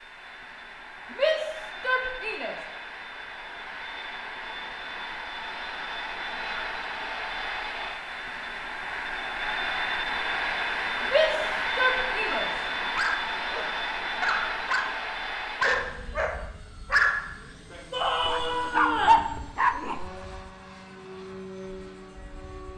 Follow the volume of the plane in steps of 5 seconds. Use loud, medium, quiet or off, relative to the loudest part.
medium, loud, loud, medium, quiet.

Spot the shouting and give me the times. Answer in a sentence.
The shouting can be heard from 1.1 to 2.5 s, from 11.0 to 12.5 s and from 17.9 to 19.2 s.